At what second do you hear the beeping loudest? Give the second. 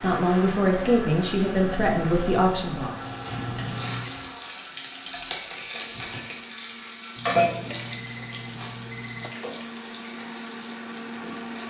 4 s.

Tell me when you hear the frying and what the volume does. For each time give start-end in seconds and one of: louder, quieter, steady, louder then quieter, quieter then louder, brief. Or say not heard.
0.0-11.6 louder then quieter.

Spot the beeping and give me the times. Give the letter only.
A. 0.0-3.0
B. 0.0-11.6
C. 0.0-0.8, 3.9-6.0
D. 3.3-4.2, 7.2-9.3
D.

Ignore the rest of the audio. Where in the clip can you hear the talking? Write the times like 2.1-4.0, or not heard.
0.0-3.0.